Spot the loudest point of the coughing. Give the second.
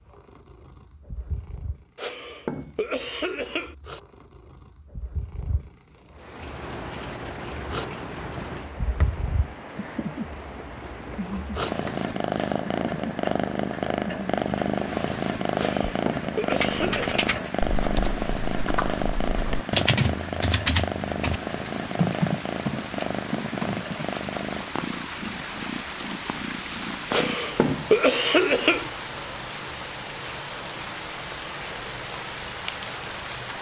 28 s.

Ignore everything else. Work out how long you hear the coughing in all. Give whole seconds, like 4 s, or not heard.
5 s.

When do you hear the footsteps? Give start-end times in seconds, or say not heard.
not heard.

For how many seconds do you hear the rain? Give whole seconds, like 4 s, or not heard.
27 s.